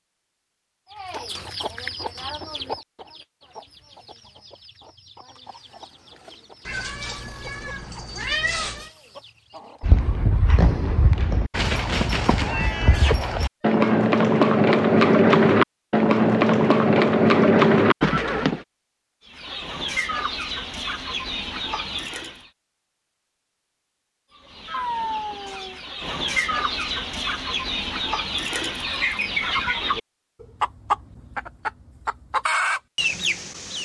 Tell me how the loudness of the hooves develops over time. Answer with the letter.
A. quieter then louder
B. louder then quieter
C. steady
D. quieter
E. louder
E.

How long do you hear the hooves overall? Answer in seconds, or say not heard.
9 s.